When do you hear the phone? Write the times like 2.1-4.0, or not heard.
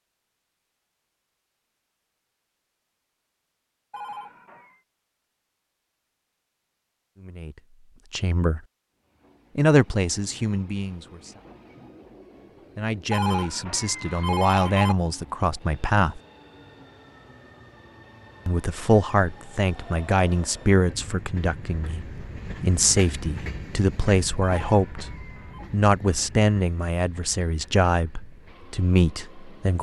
3.9-4.8, 13.1-14.9, 24.4-25.7.